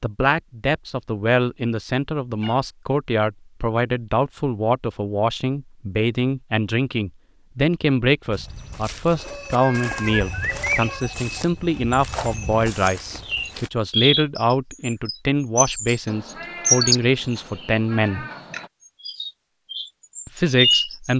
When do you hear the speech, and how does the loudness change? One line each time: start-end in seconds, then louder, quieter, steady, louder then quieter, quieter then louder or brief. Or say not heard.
0.0-18.2 steady
20.2-21.1 brief.